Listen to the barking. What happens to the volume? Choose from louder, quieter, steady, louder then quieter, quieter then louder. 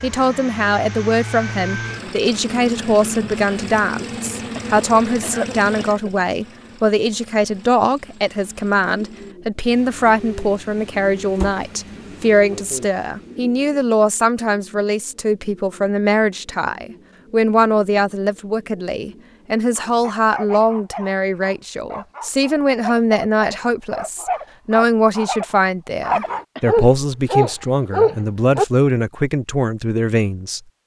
louder.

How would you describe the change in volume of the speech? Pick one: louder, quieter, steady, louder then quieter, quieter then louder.
steady.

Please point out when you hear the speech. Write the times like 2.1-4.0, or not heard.
0.0-30.8.